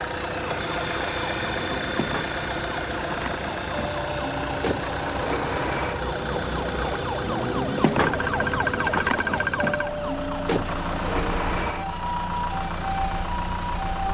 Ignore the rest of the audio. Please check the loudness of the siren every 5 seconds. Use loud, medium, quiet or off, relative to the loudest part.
medium, loud, loud.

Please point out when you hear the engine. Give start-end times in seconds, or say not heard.
0.0-14.0.